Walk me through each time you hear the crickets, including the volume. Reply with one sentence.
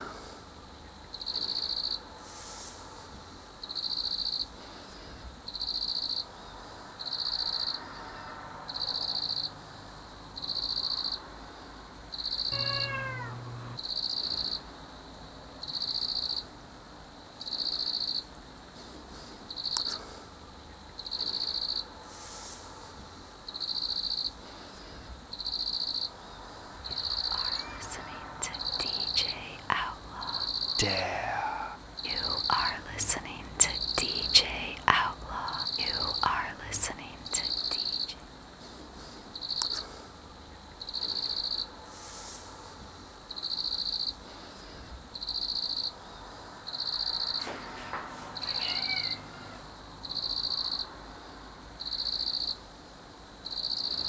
You can hear the crickets from 0.0 to 54.0 s, at a steady volume.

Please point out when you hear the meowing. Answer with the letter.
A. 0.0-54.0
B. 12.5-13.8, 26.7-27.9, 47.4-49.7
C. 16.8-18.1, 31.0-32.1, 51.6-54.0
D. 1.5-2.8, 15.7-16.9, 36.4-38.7
B.